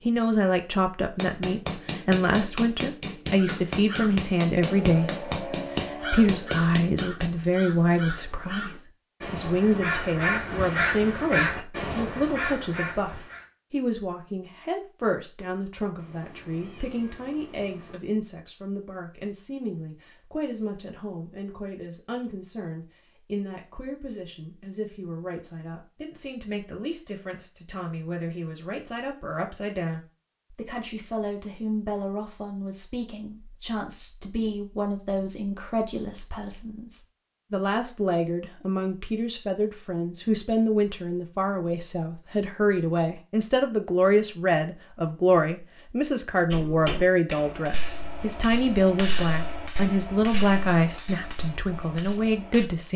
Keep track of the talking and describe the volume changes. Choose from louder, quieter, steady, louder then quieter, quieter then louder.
quieter then louder.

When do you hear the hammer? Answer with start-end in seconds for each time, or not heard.
1.1-7.3, 46.5-52.6.